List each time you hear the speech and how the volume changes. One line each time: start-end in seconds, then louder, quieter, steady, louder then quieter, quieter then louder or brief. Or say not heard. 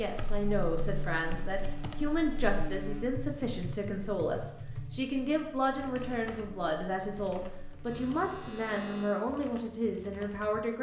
0.0-10.7 steady.